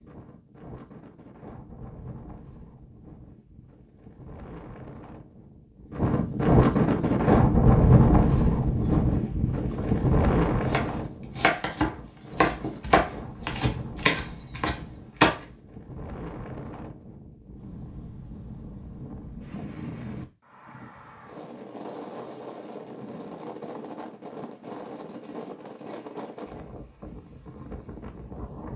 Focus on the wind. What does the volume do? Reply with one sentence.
The volume of the wind goes up, then down.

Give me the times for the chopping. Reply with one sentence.
You can hear the chopping from 7.2 to 15.4 s.